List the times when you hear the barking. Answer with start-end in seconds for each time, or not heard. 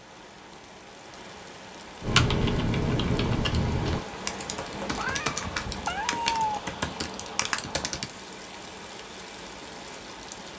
not heard.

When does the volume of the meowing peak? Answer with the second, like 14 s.
6 s.